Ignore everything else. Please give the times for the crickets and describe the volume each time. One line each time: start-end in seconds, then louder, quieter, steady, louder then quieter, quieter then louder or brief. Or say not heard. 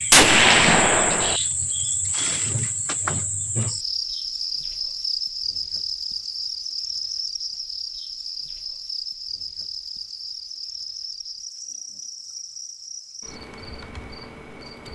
0.0-14.9 quieter.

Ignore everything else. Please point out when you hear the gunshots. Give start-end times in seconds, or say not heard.
0.1-1.4.